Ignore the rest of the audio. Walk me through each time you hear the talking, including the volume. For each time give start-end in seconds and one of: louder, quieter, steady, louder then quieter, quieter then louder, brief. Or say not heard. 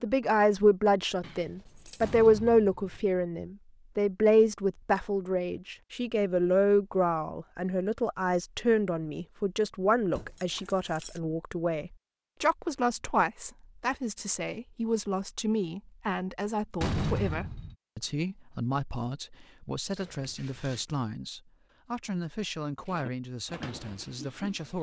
0.0-24.7 quieter.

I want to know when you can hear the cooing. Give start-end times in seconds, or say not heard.
22.9-24.7.